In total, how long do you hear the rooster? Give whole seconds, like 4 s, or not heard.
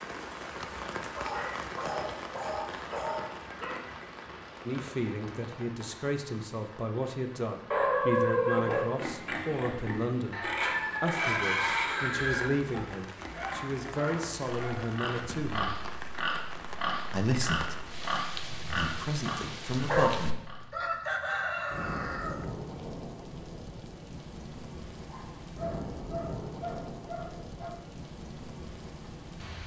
3 s.